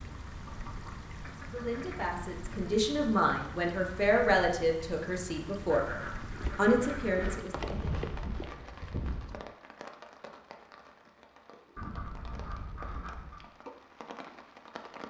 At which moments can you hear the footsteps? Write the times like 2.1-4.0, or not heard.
6.0-9.4.